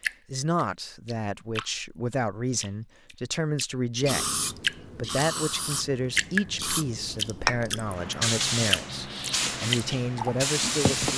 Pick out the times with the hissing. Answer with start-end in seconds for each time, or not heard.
4.0-11.1.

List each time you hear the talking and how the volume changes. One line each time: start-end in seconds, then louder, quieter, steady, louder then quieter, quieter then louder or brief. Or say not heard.
0.3-11.1 steady.